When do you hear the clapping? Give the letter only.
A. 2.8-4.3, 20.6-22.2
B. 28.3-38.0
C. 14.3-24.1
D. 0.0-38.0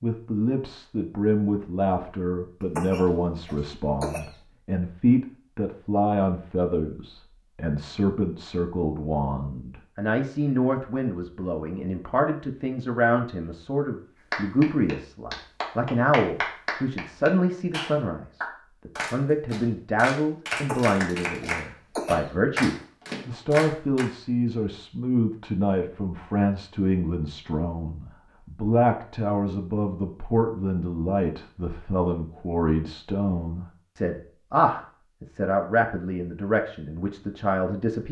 C.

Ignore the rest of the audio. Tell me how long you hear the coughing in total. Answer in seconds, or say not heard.
3 s.